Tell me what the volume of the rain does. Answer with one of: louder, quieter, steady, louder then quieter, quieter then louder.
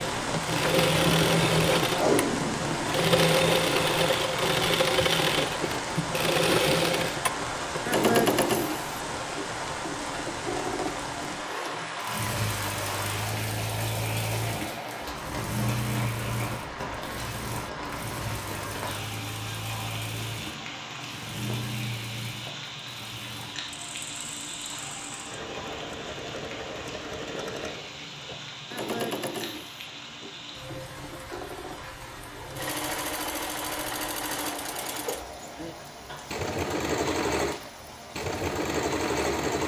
quieter.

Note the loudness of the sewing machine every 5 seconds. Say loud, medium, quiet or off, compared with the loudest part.
loud, loud, medium, medium, quiet, quiet, medium, medium.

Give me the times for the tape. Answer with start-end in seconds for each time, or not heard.
1.9-3.0.